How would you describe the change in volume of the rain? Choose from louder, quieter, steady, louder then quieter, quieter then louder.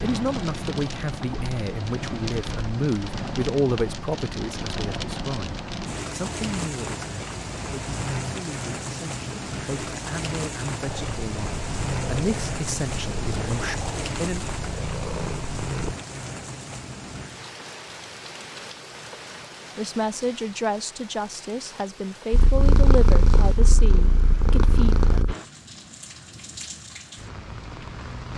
quieter.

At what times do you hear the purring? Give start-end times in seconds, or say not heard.
10.8-15.9, 22.3-25.4.